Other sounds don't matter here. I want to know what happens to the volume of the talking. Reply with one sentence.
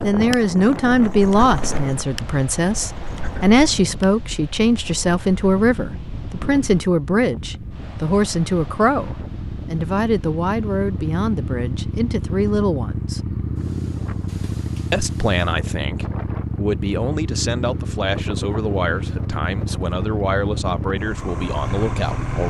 The volume of the talking goes down.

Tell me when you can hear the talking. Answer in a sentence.
You can hear the talking from 0.0 to 13.2 s and from 14.9 to 22.4 s.